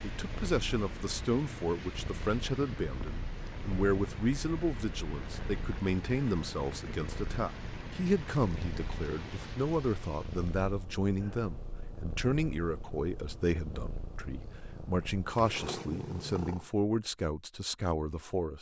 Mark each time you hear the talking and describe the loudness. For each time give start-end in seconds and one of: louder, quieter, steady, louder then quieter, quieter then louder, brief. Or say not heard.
0.0-18.5 steady.